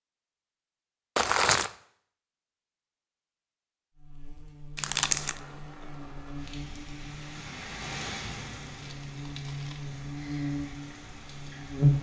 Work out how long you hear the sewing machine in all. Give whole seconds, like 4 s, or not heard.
not heard.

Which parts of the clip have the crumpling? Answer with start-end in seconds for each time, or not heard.
1.1-1.7, 4.8-5.4, 8.7-9.8.